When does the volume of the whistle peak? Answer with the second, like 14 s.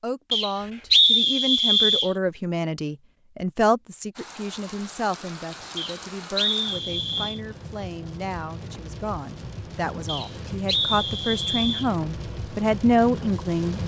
1 s.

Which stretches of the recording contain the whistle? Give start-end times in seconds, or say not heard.
0.3-2.1, 5.8-7.4, 10.1-11.9.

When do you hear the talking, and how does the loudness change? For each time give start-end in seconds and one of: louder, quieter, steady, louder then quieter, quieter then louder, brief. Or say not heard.
0.0-13.8 quieter then louder.